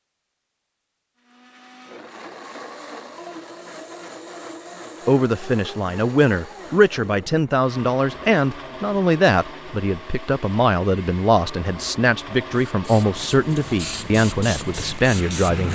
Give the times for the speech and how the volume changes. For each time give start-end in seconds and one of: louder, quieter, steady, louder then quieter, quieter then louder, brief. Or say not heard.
5.0-15.7 steady.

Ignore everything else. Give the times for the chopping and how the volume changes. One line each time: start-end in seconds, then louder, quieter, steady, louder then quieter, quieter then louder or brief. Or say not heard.
not heard.